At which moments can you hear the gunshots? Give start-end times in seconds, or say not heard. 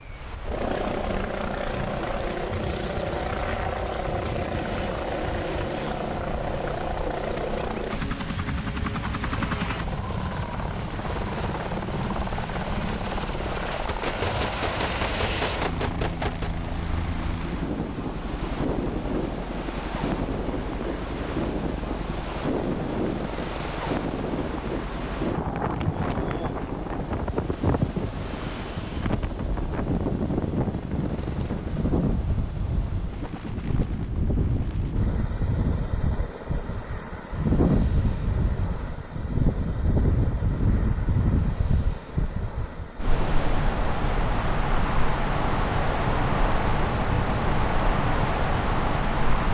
13.8-16.5.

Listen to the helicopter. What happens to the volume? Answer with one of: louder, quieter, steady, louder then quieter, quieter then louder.
quieter.